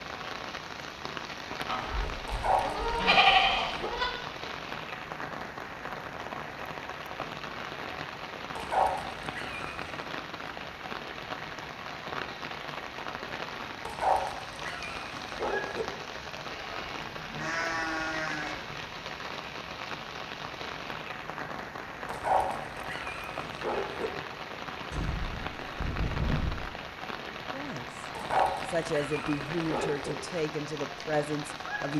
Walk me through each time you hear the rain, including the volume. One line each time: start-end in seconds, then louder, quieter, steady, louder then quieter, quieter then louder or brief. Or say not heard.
0.0-31.9 steady.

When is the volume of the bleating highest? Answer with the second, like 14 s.
3 s.